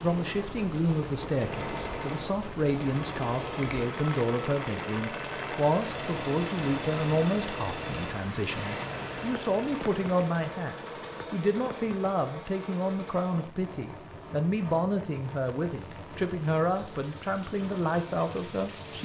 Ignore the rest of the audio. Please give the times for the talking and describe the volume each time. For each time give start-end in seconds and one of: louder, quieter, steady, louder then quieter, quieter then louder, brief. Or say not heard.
0.0-18.9 steady.